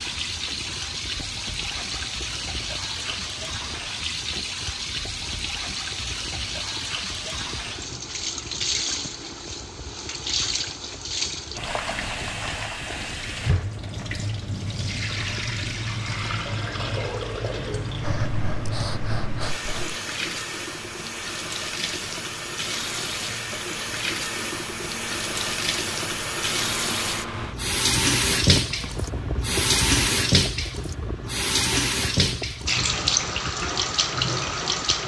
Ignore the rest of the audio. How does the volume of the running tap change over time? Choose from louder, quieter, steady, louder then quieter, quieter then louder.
louder.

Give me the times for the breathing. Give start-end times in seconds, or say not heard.
18.0-20.0.